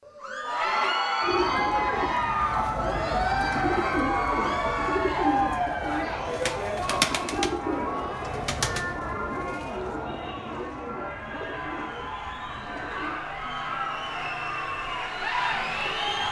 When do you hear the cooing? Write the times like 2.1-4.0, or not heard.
1.2-13.2.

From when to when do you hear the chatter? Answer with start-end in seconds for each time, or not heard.
0.1-16.2.